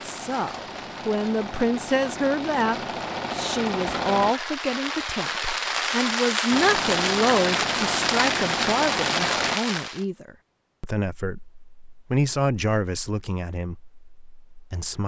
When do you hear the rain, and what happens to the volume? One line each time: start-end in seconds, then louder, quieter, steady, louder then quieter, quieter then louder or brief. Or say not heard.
0.0-10.1 louder.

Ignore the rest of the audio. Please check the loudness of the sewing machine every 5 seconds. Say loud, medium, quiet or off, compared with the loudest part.
loud, loud, off.